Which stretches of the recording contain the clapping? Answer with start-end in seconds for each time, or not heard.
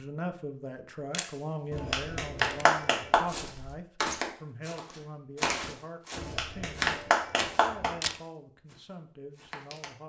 1.7-3.2, 6.2-8.0.